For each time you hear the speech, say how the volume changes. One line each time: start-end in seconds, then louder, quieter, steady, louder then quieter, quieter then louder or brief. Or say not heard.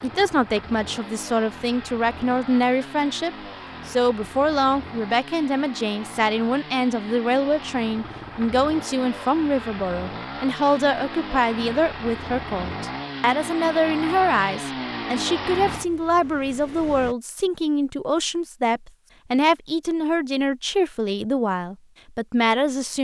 0.0-23.0 steady.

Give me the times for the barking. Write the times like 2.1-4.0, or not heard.
not heard.